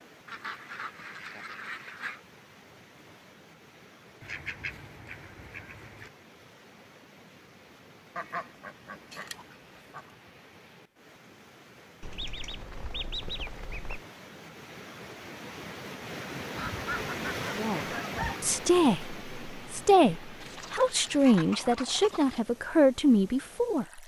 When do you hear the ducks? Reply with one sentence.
The ducks can be heard from 0.2 to 2.2 s, from 4.2 to 6.1 s, from 8.2 to 10.2 s, from 12.0 to 14.1 s, from 16.6 to 18.4 s and from 20.4 to 22.4 s.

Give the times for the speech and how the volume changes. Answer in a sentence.
The speech can be heard from 17.5 to 24.0 s, at a steady volume.